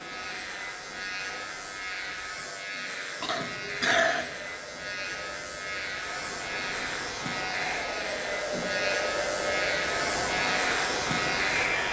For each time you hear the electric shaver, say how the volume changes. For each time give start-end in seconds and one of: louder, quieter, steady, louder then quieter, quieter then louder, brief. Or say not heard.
0.0-11.8 louder.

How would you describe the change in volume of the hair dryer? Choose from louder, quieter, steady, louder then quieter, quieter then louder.
louder.